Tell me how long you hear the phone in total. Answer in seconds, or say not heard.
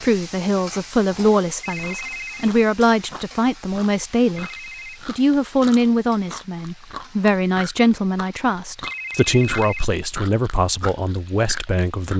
3 s.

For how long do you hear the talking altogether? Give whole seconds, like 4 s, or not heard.
12 s.